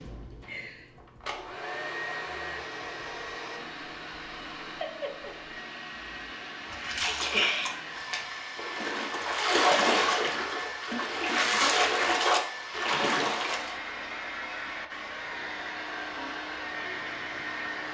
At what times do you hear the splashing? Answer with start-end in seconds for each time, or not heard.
6.7-13.8.